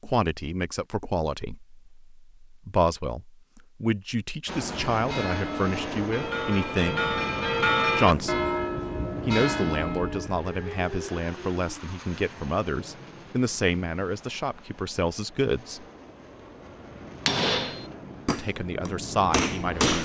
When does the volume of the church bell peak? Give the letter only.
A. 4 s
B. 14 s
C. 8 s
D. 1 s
C.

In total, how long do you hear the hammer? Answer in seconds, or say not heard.
3 s.